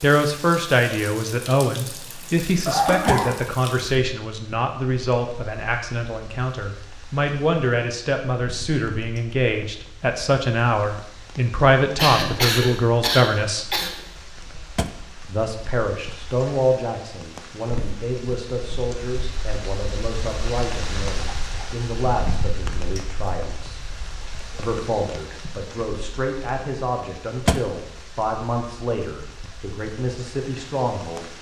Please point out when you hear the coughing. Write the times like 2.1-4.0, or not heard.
2.6-3.4, 11.9-13.9, 21.2-21.7.